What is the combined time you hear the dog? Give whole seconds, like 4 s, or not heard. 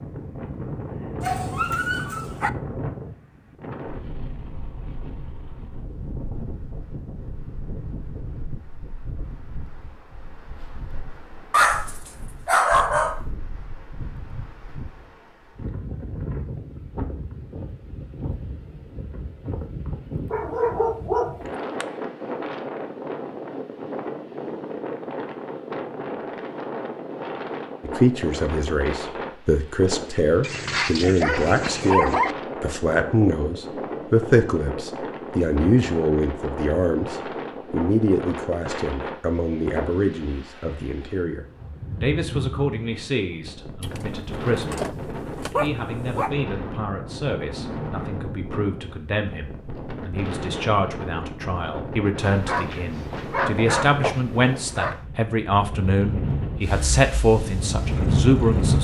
12 s.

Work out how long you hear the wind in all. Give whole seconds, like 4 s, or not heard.
59 s.